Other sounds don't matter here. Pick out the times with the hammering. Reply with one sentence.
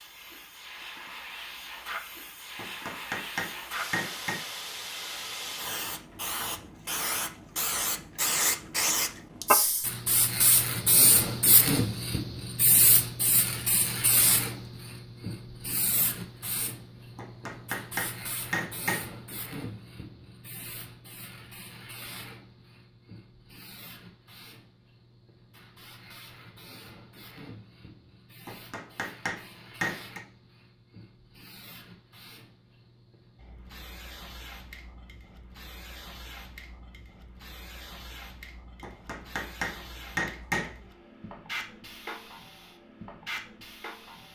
The hammering can be heard from 2.5 to 4.4 s, from 17.1 to 19.1 s, from 28.4 to 30.2 s and from 38.8 to 40.8 s.